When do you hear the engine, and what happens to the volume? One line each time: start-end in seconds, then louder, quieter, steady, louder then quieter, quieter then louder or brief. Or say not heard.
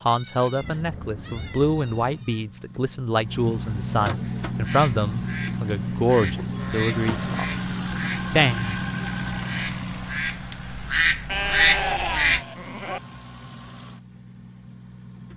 0.0-15.3 louder then quieter.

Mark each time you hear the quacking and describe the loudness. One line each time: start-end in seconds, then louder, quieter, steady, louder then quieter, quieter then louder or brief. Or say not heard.
4.5-12.4 louder.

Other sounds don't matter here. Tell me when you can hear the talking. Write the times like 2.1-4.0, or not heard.
0.1-8.8.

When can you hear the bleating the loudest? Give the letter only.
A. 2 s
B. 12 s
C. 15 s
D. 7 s
B.